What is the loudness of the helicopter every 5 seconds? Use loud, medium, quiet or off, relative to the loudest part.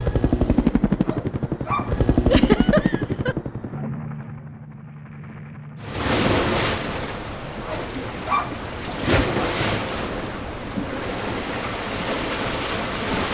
loud, quiet, off.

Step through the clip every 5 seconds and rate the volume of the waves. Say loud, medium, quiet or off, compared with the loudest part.
off, loud, loud.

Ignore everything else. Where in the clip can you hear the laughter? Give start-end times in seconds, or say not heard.
2.2-3.4.